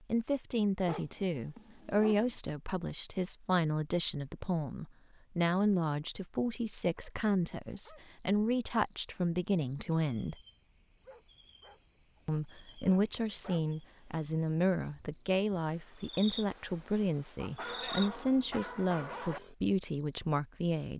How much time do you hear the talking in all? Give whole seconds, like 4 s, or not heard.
19 s.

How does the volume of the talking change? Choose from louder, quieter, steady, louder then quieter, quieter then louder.
steady.